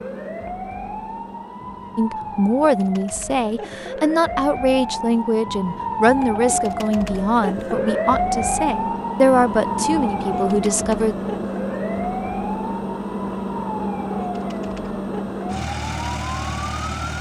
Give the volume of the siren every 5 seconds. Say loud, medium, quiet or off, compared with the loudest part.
medium, loud, medium, medium.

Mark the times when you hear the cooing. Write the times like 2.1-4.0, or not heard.
not heard.